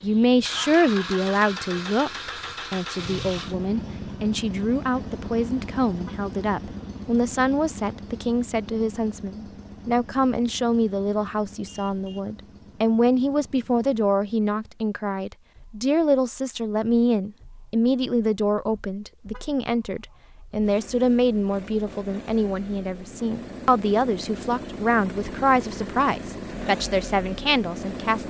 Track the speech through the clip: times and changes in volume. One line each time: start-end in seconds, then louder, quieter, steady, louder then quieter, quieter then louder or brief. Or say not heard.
0.0-28.2 steady.